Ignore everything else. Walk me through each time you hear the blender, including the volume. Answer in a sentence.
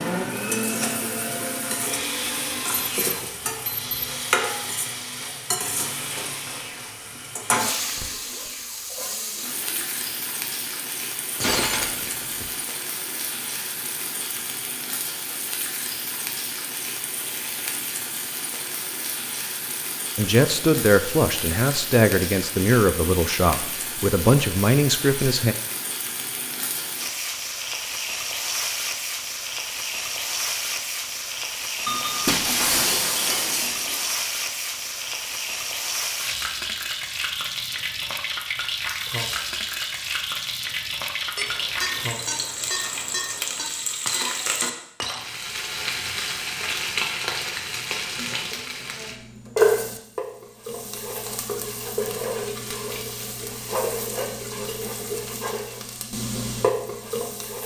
The blender can be heard from 0.0 to 9.7 s, getting quieter.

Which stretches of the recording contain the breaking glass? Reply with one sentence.
The breaking glass can be heard from 11.4 to 12.5 s, from 32.2 to 34.3 s and from 44.0 to 45.3 s.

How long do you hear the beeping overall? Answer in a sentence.
You can hear the beeping for 5 seconds altogether.